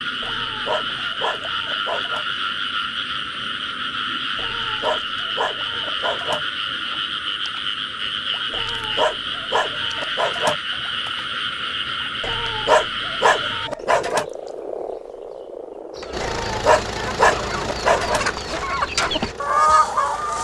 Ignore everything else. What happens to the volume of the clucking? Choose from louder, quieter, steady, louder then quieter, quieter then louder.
louder.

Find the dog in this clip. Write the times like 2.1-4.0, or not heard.
0.2-2.2, 4.3-6.4, 8.5-10.6, 12.2-14.2, 16.2-18.2.